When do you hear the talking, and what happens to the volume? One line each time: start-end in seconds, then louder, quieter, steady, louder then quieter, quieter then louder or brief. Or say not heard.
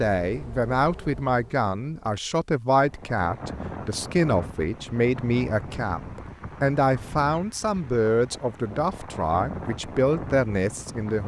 0.0-11.2 steady.